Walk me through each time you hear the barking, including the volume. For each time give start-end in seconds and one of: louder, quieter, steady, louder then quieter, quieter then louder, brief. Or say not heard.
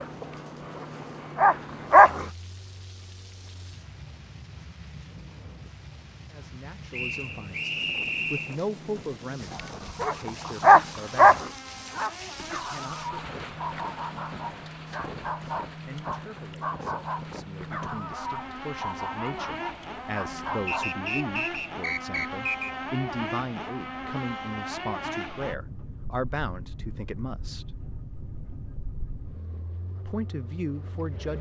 0.0-2.2 brief
9.5-21.0 quieter.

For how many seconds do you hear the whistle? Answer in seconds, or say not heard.
4 s.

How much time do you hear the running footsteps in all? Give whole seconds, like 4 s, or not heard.
not heard.